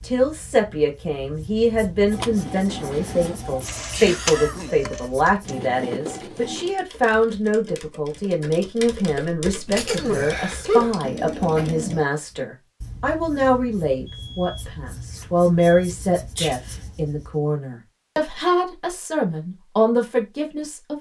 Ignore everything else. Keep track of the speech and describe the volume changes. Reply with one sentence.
The volume of the speech stays about the same.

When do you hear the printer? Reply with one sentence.
The printer can be heard from 2.1 to 6.8 s.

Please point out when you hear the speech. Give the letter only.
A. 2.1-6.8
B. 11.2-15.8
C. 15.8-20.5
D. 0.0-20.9
D.